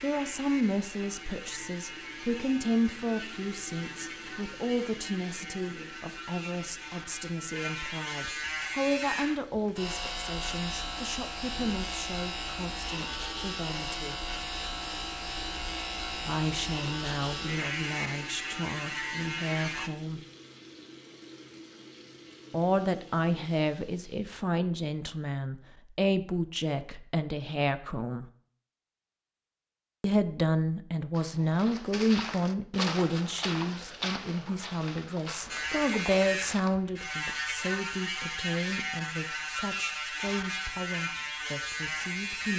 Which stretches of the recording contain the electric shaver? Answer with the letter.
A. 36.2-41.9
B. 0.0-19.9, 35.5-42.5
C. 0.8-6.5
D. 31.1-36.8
B.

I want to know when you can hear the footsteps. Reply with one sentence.
You can hear the footsteps from 31.1 to 36.8 s.